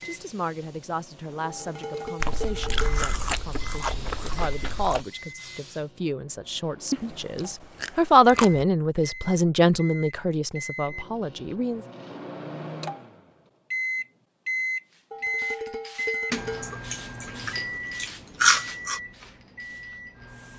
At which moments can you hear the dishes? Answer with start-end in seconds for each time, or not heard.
1.4-3.0, 15.1-16.8.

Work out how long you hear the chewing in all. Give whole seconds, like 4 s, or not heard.
7 s.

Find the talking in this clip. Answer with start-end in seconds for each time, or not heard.
0.0-11.8.